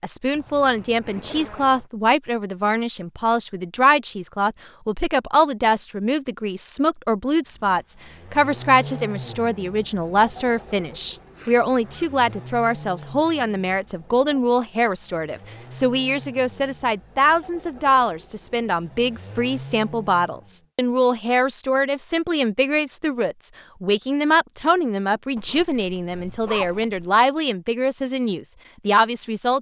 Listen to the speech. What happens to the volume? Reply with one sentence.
The loudness of the speech stays about the same.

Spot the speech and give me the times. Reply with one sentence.
You can hear the speech from 0.0 to 29.5 s.